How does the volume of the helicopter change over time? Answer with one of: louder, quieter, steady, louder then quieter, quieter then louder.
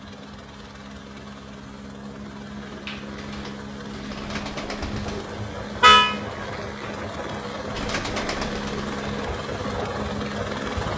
louder.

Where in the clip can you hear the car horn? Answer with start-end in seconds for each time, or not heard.
4.8-6.0.